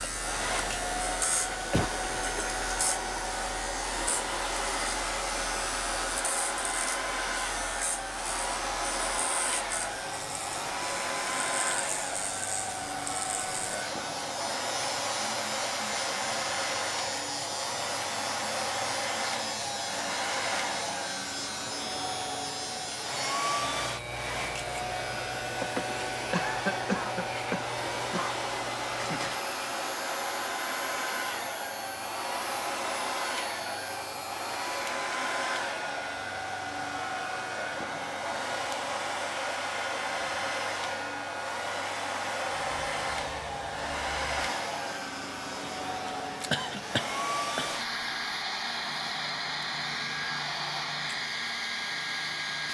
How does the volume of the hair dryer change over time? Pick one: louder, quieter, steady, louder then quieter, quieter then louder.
steady.